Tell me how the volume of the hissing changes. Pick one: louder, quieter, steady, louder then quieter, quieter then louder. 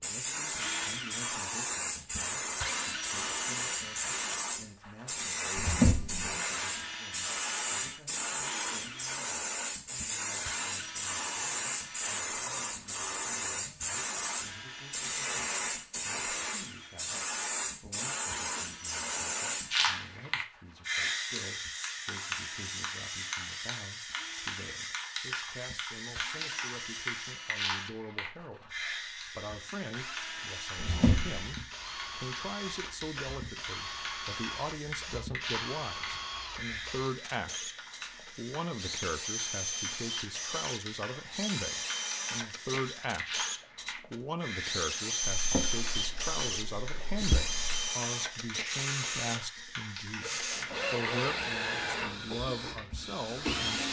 quieter.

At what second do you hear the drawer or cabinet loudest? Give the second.
6 s.